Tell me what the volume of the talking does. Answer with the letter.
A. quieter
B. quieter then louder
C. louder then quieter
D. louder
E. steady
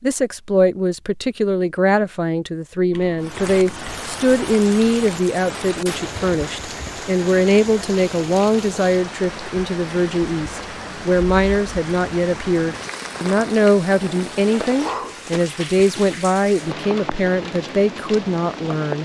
E.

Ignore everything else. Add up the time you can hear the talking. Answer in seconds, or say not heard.
19 s.